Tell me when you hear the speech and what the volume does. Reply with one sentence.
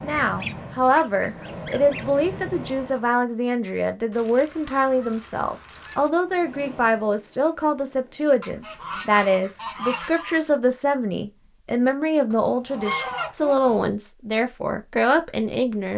You can hear the speech from 0.0 to 15.9 s, at a steady volume.